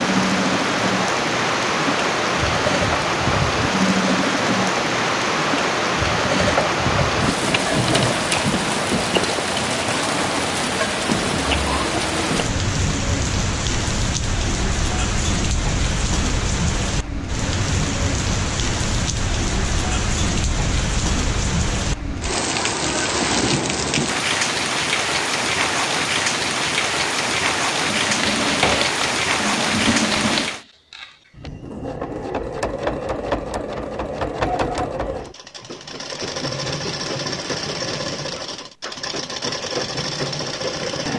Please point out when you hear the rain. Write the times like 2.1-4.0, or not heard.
0.0-30.6.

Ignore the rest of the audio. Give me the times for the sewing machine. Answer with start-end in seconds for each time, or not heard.
0.0-8.2, 27.8-41.1.